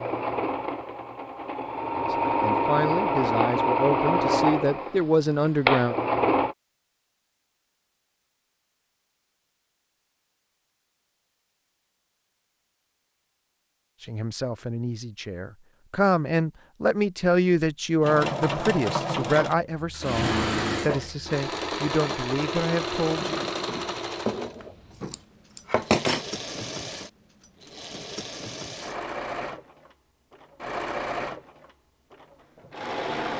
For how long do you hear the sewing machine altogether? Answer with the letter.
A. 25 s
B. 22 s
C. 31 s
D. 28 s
B.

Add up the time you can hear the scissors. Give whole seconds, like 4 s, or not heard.
2 s.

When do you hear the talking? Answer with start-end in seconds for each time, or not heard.
1.9-6.0, 14.0-23.4.